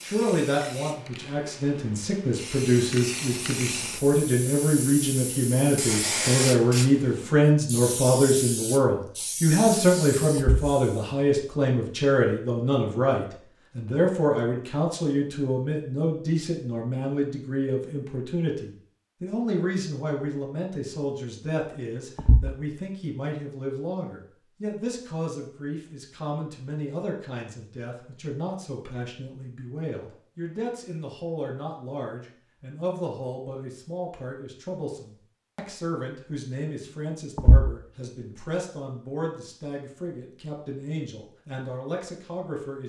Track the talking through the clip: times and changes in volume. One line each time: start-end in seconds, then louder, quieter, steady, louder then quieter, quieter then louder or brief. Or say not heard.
0.0-42.8 quieter.